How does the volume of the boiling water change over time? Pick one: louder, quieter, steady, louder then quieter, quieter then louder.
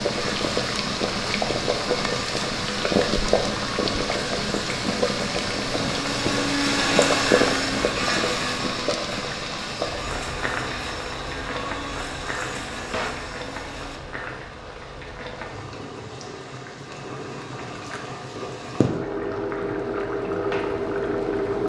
quieter then louder.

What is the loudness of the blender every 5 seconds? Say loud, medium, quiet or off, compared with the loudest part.
medium, loud, medium, off, off.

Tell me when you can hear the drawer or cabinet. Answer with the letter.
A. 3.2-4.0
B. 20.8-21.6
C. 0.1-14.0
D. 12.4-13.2
D.